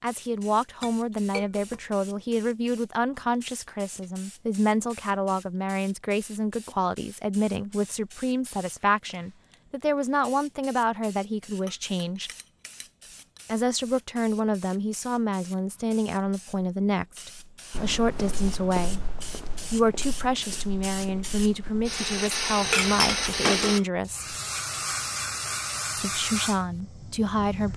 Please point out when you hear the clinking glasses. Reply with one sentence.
The clinking glasses can be heard from 0.8 to 1.9 s, from 11.5 to 13.4 s and from 22.7 to 23.9 s.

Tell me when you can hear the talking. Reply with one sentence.
You can hear the talking from 0.0 to 12.3 s, from 13.4 to 19.0 s, from 19.7 to 24.4 s and from 25.9 to 27.7 s.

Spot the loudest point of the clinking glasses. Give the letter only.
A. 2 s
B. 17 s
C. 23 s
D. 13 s
C.